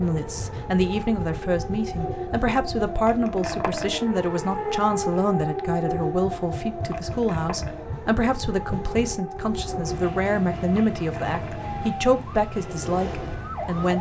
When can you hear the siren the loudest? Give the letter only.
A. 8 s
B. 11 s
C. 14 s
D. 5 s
D.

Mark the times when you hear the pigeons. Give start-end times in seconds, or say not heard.
not heard.